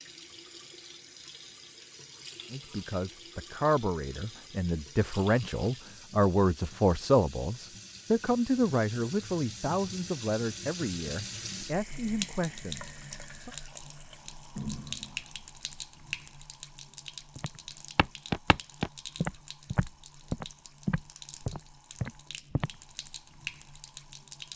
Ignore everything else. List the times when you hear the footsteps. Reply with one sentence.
The footsteps can be heard from 17.4 to 22.7 s.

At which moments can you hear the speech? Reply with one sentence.
You can hear the speech from 2.5 to 13.5 s.